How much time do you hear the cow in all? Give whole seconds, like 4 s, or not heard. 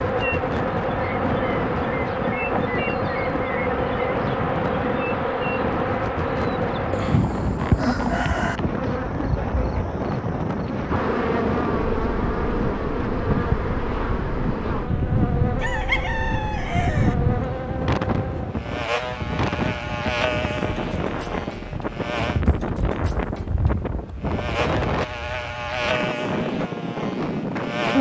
not heard.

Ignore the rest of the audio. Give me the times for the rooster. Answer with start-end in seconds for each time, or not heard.
6.9-8.6, 15.6-17.1.